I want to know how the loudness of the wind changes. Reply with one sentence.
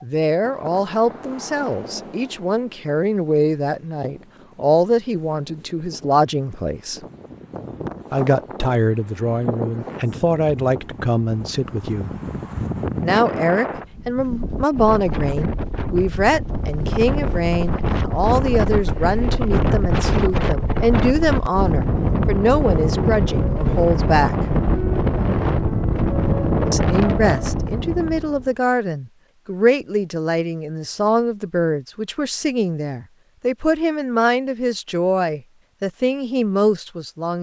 The volume of the wind goes up.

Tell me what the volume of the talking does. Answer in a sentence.
The loudness of the talking stays about the same.